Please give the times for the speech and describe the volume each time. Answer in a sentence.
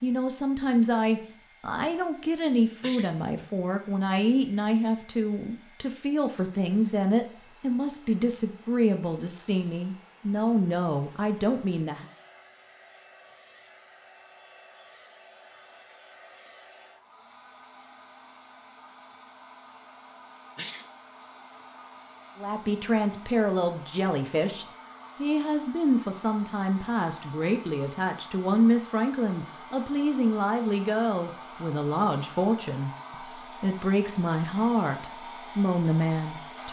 The speech can be heard from 0.0 to 12.1 s, at a steady volume; and from 22.4 to 36.6 s, at a steady volume.